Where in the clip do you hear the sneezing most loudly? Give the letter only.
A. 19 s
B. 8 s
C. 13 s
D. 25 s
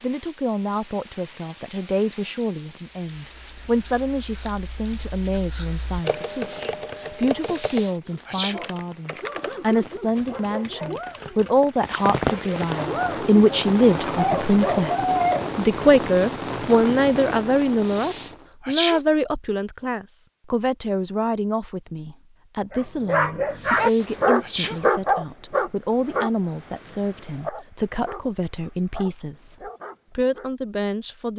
A.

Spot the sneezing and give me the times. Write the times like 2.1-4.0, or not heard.
7.4-8.6, 17.8-19.0, 23.6-24.8.